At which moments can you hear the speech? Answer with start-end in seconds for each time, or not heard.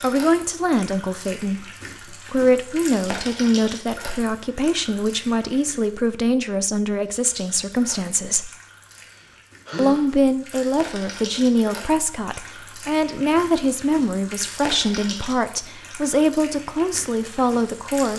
0.0-8.5, 9.8-18.1.